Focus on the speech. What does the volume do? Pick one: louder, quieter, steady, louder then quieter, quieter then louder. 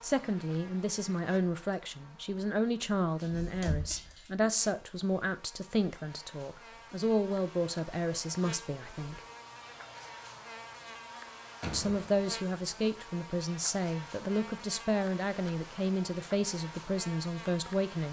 steady.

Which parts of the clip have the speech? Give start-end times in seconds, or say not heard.
0.0-9.2, 11.7-18.0.